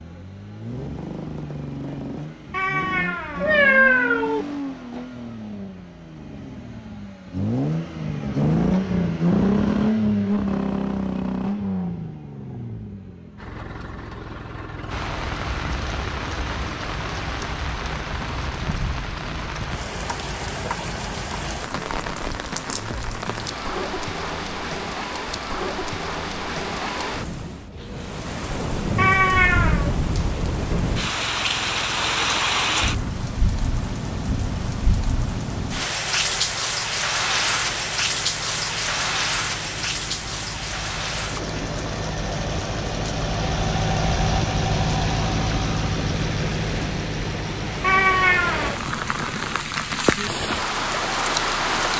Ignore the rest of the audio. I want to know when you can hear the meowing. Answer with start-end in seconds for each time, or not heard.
2.5-4.5, 28.9-29.9, 47.8-48.8.